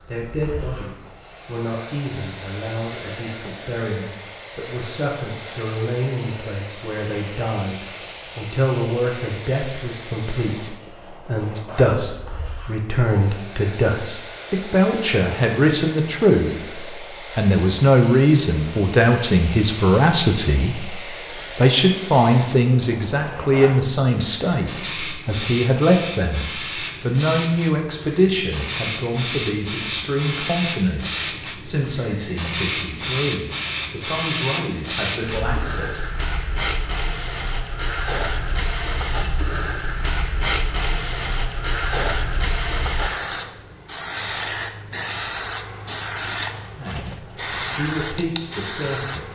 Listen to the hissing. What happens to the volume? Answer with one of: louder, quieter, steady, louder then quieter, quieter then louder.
louder.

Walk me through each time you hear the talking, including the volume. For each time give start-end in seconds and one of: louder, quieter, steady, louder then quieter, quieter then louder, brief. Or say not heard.
0.1-36.1 louder then quieter
46.7-49.2 brief.